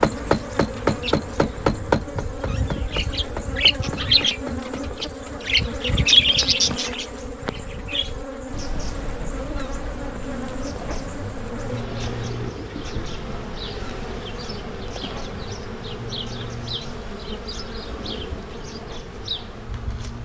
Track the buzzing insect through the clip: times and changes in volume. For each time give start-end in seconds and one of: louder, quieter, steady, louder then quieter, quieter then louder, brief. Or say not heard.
0.0-20.1 steady.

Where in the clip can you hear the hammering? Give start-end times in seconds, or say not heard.
0.0-5.0.